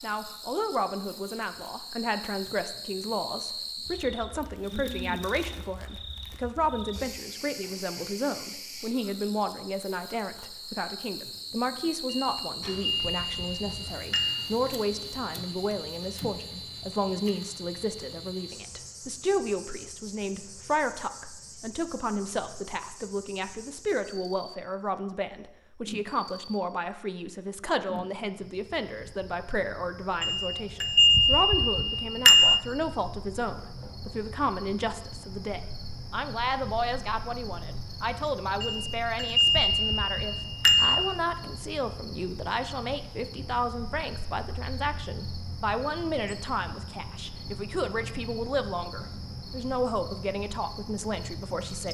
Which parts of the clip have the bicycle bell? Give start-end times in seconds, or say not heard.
12.1-14.6, 30.2-32.6, 38.6-41.1.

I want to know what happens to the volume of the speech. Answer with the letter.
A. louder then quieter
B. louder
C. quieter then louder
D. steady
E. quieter
D.